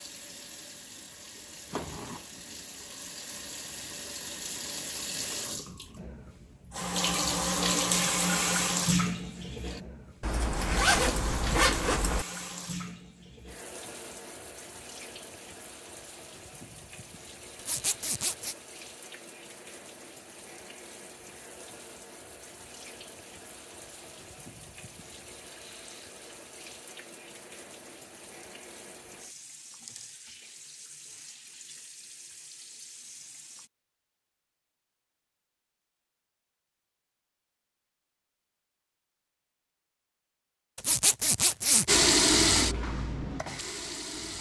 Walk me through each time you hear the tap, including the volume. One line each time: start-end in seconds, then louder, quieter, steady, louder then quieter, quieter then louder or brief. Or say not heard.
0.0-33.7 louder then quieter
41.9-44.3 brief.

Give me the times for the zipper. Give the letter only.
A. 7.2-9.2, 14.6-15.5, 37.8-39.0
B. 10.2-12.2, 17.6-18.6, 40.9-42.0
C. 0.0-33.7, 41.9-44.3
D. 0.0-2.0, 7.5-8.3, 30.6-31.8
B.